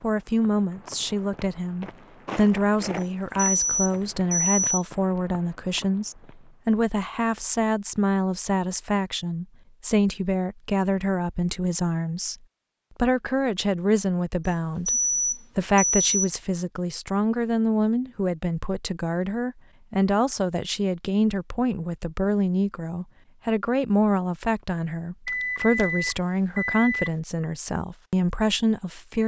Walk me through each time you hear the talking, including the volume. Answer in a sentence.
You can hear the talking from 0.0 to 12.3 s, at a steady volume; and from 12.9 to 29.2 s, at a steady volume.